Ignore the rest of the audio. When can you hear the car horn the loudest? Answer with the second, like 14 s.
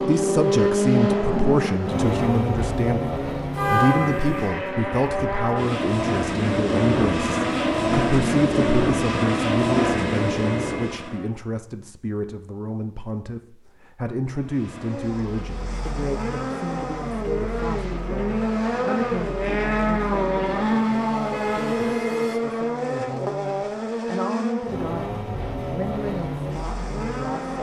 4 s.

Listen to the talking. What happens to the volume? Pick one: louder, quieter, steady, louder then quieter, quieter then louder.
quieter.